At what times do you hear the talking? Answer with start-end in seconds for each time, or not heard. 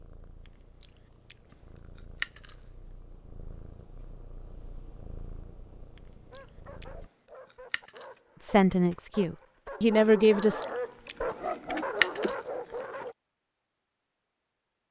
8.4-10.7.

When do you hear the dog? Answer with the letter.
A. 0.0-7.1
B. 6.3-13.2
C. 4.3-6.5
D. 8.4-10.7
B.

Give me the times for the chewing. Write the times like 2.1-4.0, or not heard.
0.5-2.8, 6.0-8.2, 10.4-13.1.